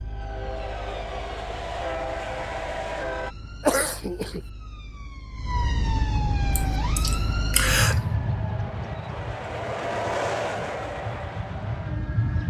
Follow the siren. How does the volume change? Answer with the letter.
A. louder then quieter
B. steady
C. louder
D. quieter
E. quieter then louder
A.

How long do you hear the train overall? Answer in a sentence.
The train can be heard for 9 seconds in total.